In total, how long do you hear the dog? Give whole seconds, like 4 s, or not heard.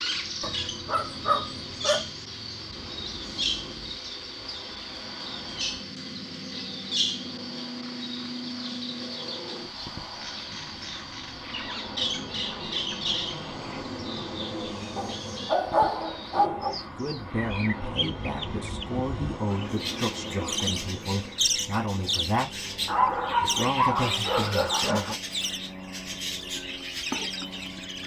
6 s.